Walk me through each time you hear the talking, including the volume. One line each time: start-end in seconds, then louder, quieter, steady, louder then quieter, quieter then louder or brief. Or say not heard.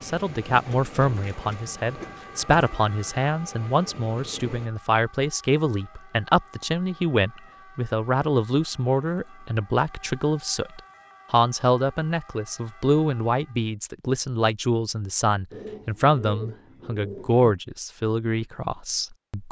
0.0-19.4 steady.